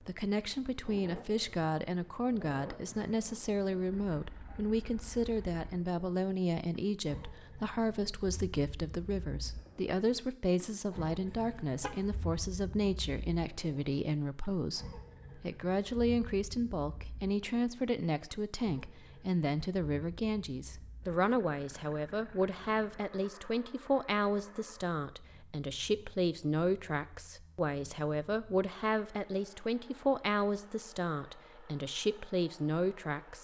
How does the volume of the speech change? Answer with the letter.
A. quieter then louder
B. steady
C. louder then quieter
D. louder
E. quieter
B.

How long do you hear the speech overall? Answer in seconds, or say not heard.
33 s.